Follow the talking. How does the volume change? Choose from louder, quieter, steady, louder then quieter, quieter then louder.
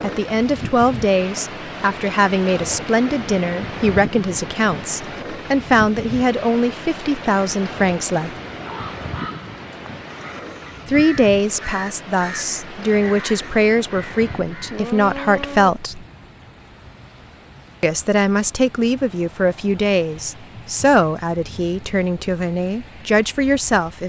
steady.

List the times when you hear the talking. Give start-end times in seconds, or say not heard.
0.0-8.3, 10.8-16.1, 17.8-24.0.